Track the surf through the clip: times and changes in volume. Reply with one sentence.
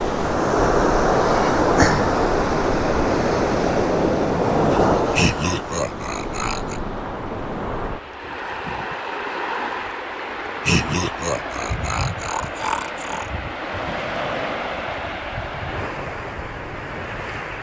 You can hear the surf from 0.0 to 17.5 s, getting quieter.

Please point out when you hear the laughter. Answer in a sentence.
The laughter can be heard from 5.1 to 6.8 s and from 10.7 to 13.3 s.